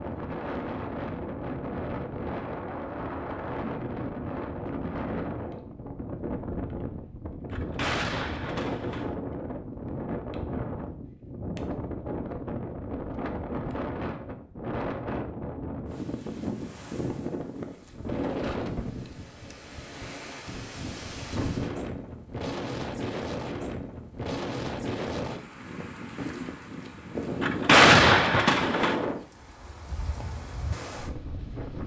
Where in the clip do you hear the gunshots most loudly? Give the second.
28 s.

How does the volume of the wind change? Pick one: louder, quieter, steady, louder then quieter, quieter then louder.
steady.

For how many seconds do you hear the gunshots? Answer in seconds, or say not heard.
3 s.